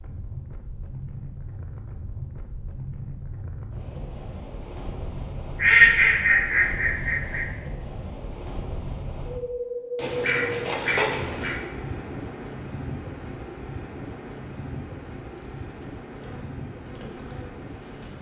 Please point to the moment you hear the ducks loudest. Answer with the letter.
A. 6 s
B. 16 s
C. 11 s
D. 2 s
A.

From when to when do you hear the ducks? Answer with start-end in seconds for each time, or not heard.
5.5-7.5, 9.9-11.6.